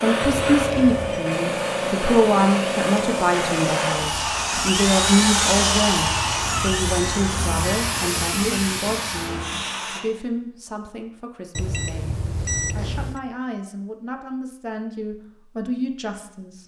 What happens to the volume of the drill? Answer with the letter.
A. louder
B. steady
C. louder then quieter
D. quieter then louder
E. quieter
C.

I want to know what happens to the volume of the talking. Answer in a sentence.
The volume of the talking goes down.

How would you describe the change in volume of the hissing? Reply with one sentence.
The loudness of the hissing goes down, then up.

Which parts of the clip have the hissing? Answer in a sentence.
You can hear the hissing from 0.0 to 10.0 s.